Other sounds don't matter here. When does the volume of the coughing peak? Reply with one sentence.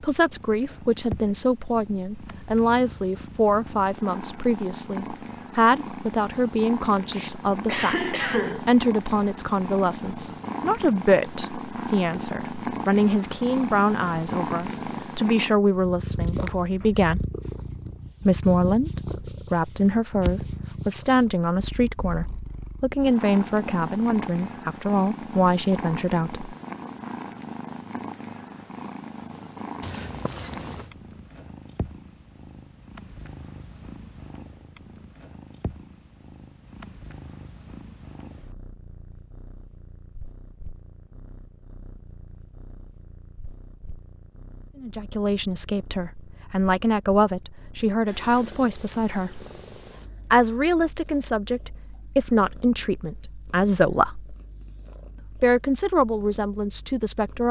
The volume of the coughing peaks at 8 seconds.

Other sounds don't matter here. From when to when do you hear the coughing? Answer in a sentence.
You can hear the coughing from 6.9 to 8.7 s and from 29.8 to 30.9 s.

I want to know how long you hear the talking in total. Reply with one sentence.
The talking can be heard for 36 seconds in total.